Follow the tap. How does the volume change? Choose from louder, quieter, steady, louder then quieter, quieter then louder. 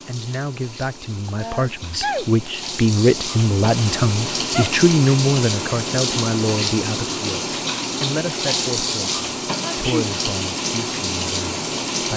louder.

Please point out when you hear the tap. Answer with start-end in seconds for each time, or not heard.
0.0-12.1.